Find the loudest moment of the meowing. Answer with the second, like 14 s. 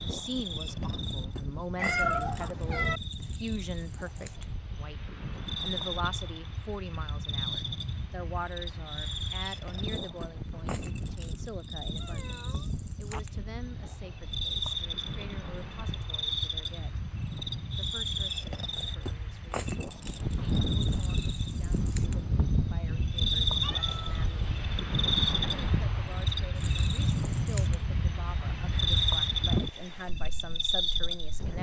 2 s.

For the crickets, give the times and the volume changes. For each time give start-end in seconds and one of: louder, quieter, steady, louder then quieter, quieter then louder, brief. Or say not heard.
0.0-31.5 louder.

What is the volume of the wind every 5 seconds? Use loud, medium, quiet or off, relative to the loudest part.
medium, medium, medium, medium, loud, loud, medium.